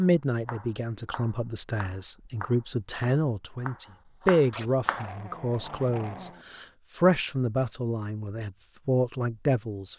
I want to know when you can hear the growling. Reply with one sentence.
You can hear the growling from 4.5 to 6.5 s.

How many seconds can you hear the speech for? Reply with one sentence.
You can hear the speech for 10 seconds altogether.